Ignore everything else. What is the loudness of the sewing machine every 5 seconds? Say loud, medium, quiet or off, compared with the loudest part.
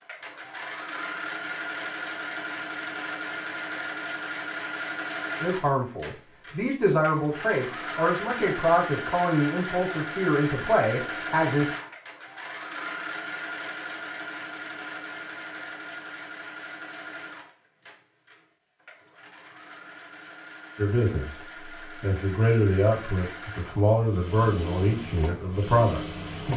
loud, loud, loud, medium, medium, loud.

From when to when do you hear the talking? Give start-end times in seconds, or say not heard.
5.4-11.7, 20.8-26.5.